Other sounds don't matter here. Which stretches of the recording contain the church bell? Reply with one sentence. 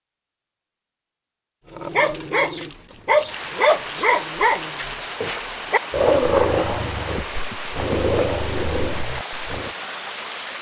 You can't hear the church bell here.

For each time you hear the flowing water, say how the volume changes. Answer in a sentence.
The flowing water can be heard from 3.2 to 10.5 s, at a steady volume.